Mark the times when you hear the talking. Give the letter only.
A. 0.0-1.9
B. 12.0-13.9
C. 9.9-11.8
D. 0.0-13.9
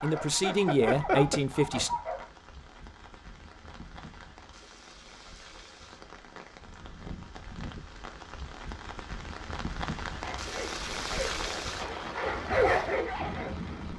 A.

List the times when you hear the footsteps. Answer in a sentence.
The footsteps can't be heard in this clip.